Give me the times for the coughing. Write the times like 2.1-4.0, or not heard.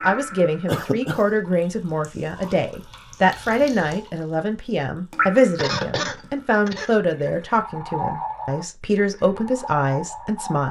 0.7-1.2, 5.5-7.0.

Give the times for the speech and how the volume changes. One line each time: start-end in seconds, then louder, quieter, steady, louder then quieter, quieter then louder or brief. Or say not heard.
0.0-10.6 steady.